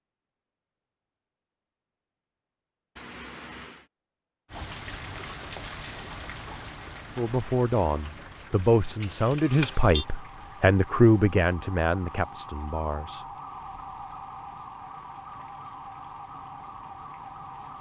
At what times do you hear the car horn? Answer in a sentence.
You can hear the car horn from 3.0 to 3.9 s and from 9.0 to 10.1 s.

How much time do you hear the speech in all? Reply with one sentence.
The speech can be heard for 6 seconds in total.